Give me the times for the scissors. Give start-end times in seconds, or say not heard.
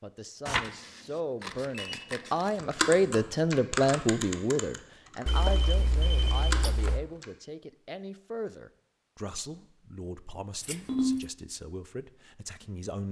0.5-2.5, 5.2-7.0, 10.6-11.2.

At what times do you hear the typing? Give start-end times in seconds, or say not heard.
2.5-7.2.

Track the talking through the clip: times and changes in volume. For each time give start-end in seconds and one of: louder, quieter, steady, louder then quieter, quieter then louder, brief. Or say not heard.
0.0-13.0 louder then quieter.